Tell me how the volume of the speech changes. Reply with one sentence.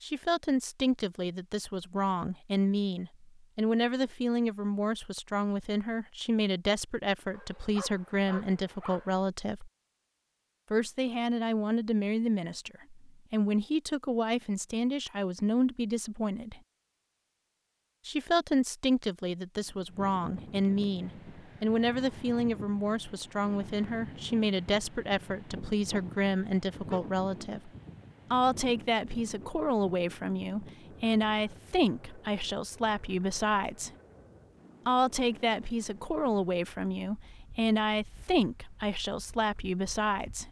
The volume of the speech stays about the same.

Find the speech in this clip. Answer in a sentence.
The speech can be heard from 0.0 to 9.7 s, from 10.7 to 16.6 s, from 18.1 to 27.7 s, from 28.3 to 33.9 s and from 34.9 to 40.4 s.